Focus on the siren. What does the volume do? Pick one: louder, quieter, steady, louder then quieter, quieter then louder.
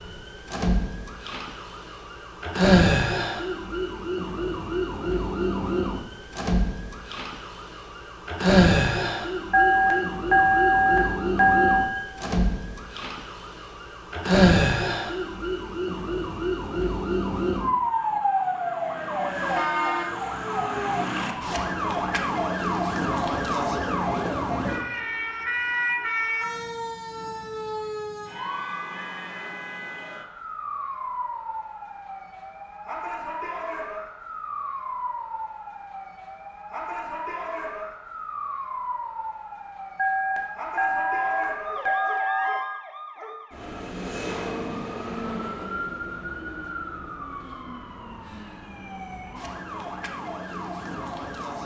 quieter.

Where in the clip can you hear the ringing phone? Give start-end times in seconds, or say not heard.
9.5-11.9, 40.0-42.7.